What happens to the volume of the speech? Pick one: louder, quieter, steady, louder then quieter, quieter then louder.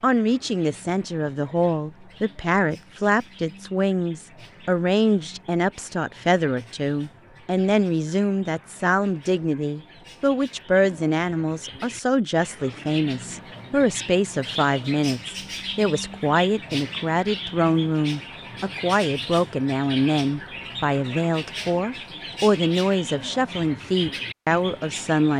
steady.